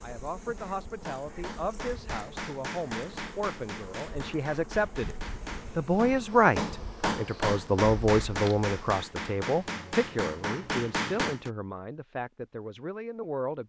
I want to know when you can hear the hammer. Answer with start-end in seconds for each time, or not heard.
0.6-11.5.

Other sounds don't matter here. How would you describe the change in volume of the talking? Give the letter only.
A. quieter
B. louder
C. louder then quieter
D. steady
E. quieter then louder
C.